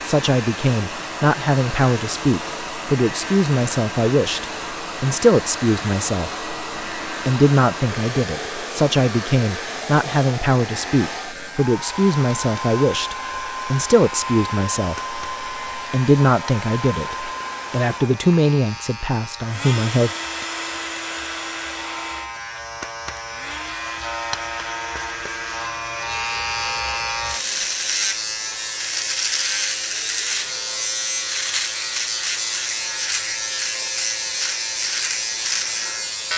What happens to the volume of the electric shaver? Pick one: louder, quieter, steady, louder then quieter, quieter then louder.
louder.